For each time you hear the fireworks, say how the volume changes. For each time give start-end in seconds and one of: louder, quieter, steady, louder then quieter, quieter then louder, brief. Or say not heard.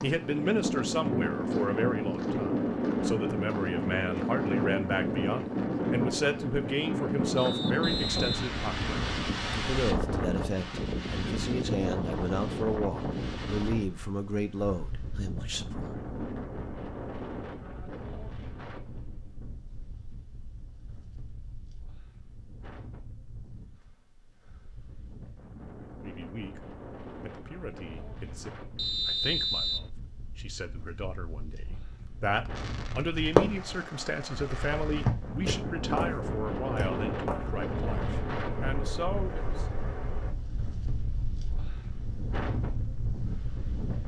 32.5-40.3 quieter.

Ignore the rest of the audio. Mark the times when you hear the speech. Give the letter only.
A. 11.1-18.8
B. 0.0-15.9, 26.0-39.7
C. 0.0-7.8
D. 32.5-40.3
B.